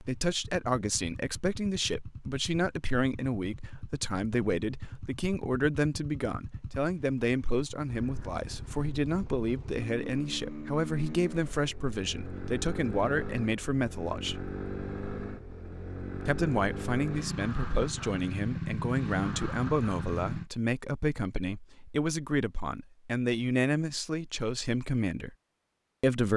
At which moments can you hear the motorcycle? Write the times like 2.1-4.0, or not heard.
0.0-20.4.